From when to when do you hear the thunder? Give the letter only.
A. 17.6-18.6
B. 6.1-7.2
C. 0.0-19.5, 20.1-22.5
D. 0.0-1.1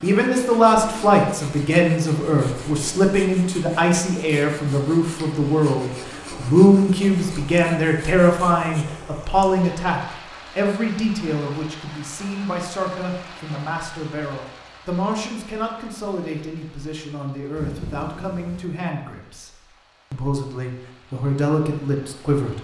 A.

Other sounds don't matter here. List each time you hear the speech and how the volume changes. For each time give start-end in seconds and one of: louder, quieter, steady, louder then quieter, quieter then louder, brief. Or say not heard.
0.0-19.5 quieter
20.1-22.5 brief.